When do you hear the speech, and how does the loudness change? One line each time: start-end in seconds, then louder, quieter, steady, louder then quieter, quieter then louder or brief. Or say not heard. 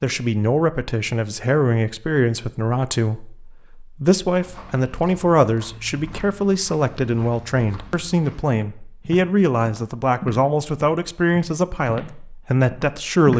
0.0-13.3 steady.